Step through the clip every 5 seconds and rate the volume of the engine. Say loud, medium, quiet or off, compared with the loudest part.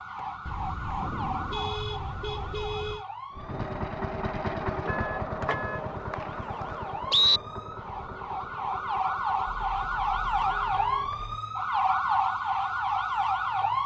loud, medium, quiet.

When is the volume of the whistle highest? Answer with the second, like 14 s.
7 s.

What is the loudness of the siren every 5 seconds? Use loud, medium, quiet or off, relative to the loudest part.
medium, medium, loud.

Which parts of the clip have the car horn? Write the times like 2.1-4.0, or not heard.
0.5-3.0, 4.8-5.8, 9.5-11.3.